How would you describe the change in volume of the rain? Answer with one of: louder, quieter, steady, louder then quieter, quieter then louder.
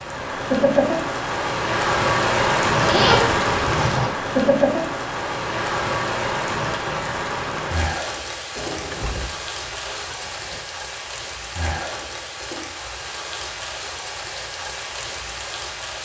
quieter.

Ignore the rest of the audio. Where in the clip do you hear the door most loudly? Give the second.
9 s.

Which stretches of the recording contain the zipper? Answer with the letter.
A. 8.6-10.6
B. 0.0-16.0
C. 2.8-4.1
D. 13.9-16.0
C.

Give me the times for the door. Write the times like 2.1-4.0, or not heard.
8.6-10.6.